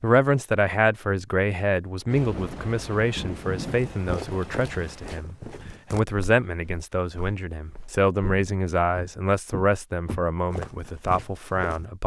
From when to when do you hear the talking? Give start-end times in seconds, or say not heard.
0.0-12.0.